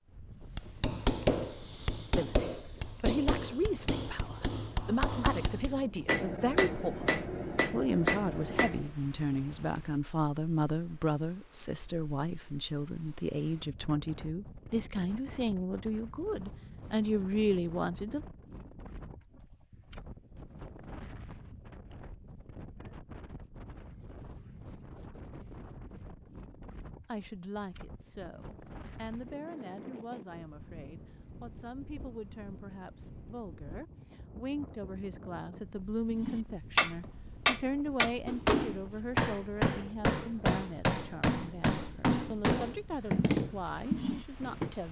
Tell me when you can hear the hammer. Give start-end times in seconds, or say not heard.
0.6-8.9, 36.1-44.7.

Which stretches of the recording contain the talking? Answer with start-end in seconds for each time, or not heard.
2.1-18.2, 27.1-44.8.